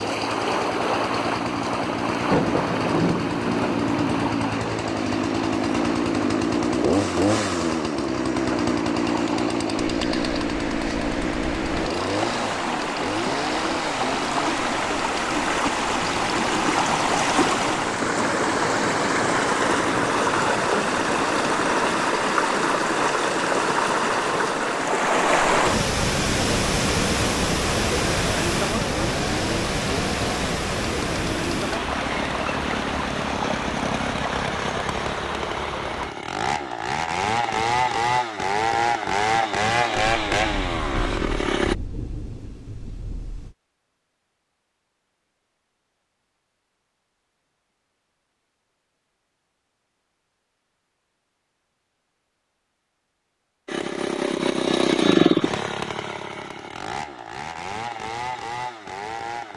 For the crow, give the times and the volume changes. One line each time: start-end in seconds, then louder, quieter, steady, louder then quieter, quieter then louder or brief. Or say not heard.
not heard.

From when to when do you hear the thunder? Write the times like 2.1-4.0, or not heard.
2.2-4.3, 40.0-43.5.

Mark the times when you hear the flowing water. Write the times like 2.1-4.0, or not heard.
0.0-36.1.